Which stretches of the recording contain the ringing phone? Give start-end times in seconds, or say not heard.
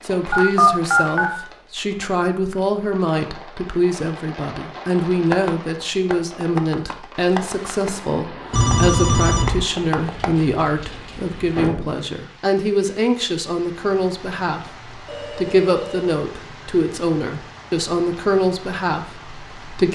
0.3-1.3, 8.5-9.7, 15.1-16.1.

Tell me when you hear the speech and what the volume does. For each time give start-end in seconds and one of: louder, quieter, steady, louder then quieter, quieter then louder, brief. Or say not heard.
0.0-19.8 steady.